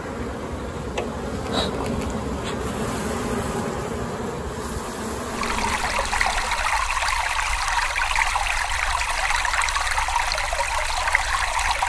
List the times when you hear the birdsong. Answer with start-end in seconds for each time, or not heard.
not heard.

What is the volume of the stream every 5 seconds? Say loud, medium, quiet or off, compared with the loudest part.
off, loud, loud.